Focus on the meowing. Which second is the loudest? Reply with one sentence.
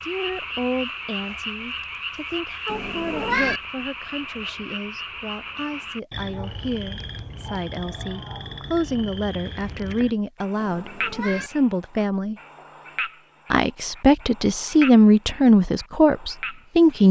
The volume of the meowing peaks at 3 seconds.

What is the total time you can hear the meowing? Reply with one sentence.
You can hear the meowing for 2 seconds altogether.